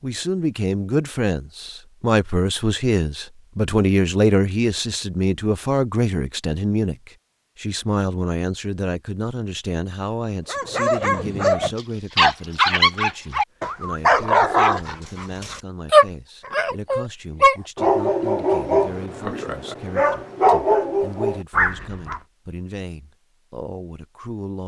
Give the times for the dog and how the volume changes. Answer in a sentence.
The dog can be heard from 10.4 to 22.2 s, at a steady volume.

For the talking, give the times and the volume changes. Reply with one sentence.
You can hear the talking from 0.0 to 24.6 s, getting quieter.